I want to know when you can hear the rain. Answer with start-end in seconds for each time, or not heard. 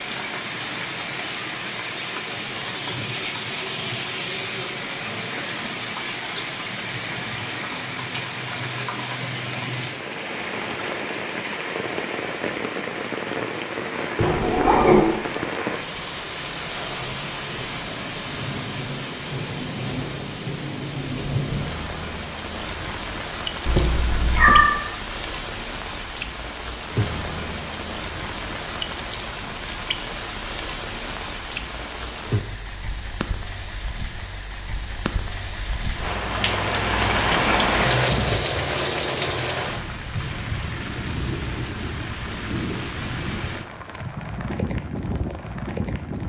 0.0-46.2.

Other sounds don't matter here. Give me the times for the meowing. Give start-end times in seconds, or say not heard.
14.2-15.1, 23.6-24.7.